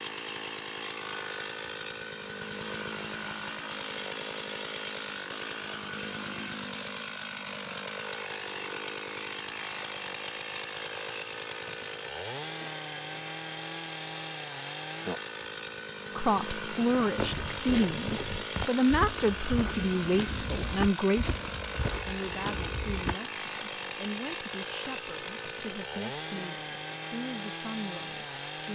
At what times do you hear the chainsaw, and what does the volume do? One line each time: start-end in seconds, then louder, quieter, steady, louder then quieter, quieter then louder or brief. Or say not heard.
0.0-28.6 steady.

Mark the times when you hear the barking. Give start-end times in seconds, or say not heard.
not heard.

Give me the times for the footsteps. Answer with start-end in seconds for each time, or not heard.
17.0-23.1.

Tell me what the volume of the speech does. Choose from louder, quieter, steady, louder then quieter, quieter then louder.
quieter.